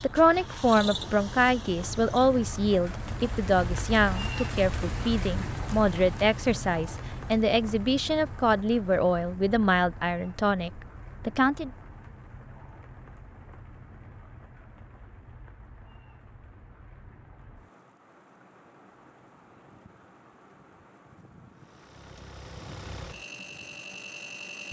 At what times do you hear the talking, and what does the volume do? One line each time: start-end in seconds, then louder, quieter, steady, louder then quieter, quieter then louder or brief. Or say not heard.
0.0-11.7 steady.